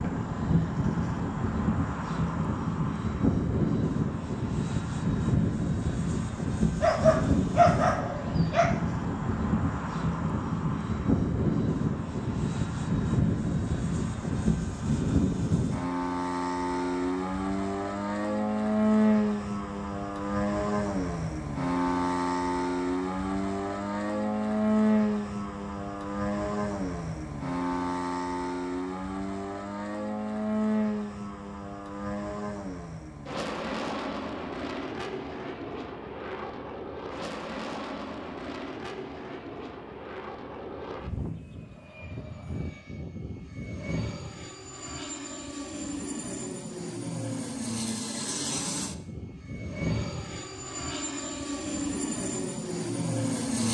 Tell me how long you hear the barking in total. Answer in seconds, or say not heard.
2 s.